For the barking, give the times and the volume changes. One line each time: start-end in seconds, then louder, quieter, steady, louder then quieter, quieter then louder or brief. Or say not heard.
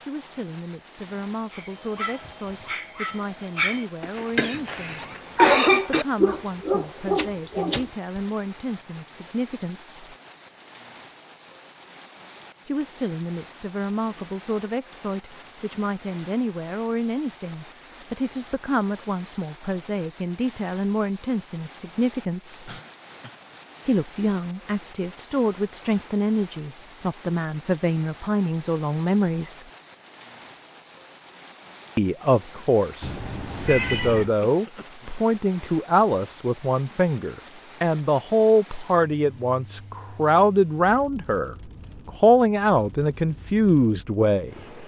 1.5-8.2 louder.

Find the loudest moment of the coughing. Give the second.
6 s.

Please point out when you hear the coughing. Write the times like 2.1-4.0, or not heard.
4.3-6.0, 22.6-23.4, 34.5-35.1.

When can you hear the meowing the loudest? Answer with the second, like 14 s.
34 s.